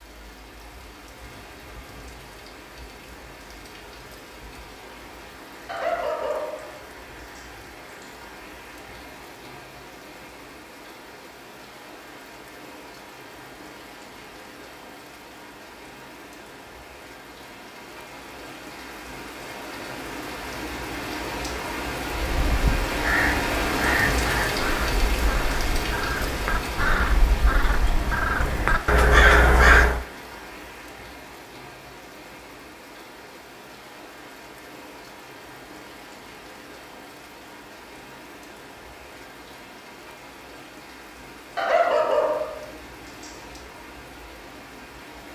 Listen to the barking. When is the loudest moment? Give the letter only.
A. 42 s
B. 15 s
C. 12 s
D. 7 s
A.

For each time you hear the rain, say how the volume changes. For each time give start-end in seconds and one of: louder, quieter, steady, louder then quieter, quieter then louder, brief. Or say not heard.
0.0-45.2 louder then quieter.